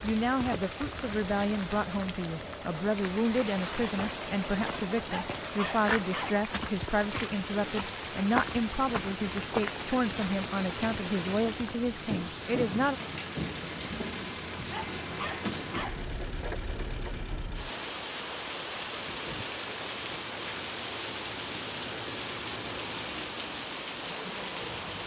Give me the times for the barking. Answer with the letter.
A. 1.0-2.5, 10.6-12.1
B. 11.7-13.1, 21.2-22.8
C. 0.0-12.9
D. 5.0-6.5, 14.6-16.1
D.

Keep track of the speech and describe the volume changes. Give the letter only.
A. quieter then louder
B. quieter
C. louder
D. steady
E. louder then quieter
D.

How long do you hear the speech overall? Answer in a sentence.
You can hear the speech for 13 seconds altogether.